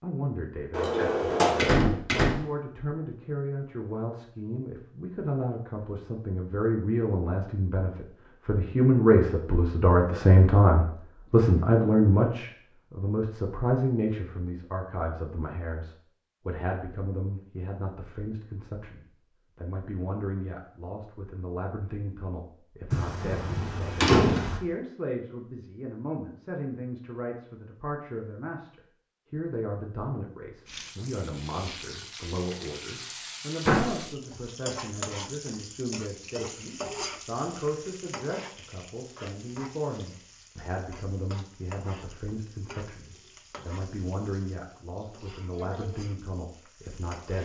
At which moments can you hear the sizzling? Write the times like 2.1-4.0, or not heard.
30.6-47.4.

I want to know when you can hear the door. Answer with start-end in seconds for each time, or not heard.
0.7-2.4, 22.9-24.6, 33.6-34.1.